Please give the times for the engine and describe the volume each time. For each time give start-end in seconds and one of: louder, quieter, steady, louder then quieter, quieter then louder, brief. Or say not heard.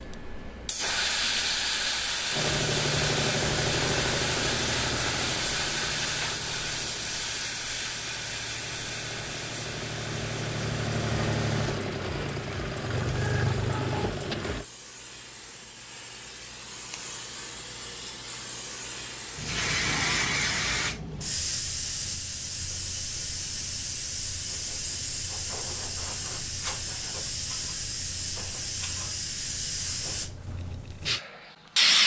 2.3-14.7 quieter then louder.